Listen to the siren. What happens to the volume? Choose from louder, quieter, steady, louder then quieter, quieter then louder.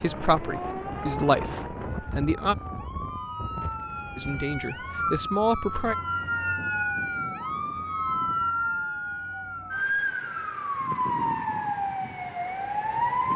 louder.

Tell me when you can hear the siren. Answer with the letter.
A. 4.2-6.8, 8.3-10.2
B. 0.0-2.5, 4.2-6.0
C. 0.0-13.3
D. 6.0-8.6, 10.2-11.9
C.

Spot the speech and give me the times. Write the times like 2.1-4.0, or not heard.
0.0-2.5, 4.2-6.0.